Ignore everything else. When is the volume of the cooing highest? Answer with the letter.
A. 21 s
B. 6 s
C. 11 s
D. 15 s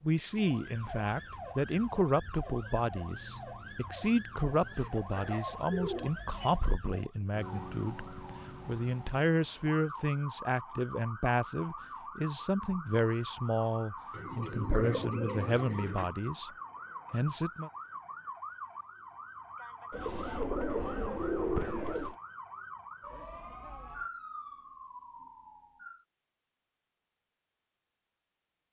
A.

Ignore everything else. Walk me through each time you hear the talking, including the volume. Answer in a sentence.
The talking can be heard from 0.0 to 16.5 s, at a steady volume; and briefly from 17.1 to 17.7 s.